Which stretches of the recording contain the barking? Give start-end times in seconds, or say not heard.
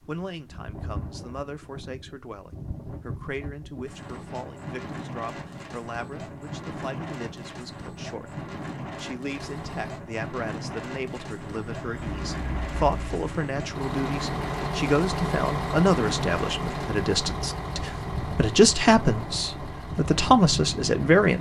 not heard.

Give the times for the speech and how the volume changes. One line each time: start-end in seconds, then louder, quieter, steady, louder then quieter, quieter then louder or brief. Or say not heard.
0.0-21.3 louder.